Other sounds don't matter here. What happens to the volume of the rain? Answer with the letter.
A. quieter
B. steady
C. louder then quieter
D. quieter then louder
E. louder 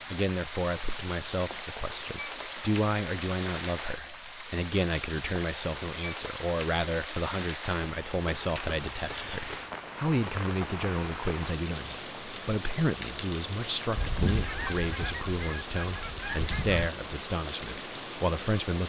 B.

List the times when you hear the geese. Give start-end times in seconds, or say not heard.
13.9-16.9.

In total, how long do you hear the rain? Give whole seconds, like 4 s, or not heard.
19 s.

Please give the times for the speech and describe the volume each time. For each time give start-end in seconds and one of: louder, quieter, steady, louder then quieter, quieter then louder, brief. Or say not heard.
0.1-18.8 steady.